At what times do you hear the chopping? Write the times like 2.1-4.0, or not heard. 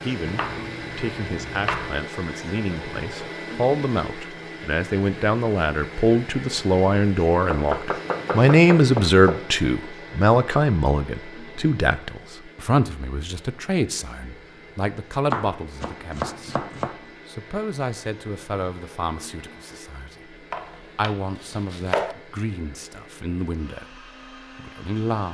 0.2-1.9, 7.5-9.4, 15.3-16.9, 20.5-22.1.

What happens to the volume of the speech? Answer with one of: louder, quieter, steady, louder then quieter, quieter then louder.
louder then quieter.